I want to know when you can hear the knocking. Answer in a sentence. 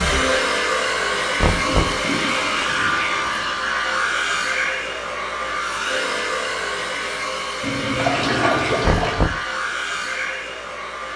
The knocking can be heard from 1.4 to 2.0 s and from 8.8 to 9.4 s.